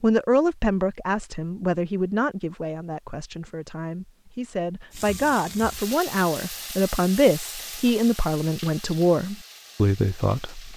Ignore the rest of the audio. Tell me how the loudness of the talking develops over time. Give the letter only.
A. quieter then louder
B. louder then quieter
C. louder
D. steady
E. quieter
A.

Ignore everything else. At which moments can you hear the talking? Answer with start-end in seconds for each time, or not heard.
0.0-10.7.